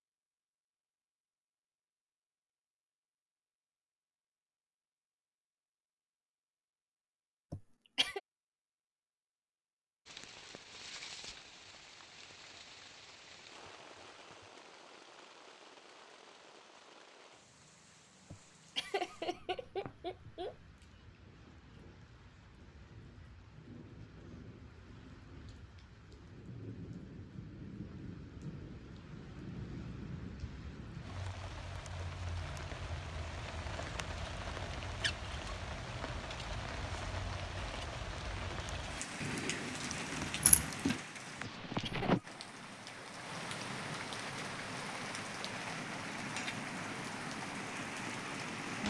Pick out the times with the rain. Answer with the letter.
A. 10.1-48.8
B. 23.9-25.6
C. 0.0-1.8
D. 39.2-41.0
A.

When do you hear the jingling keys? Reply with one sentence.
You can hear the jingling keys from 39.2 to 41.0 s.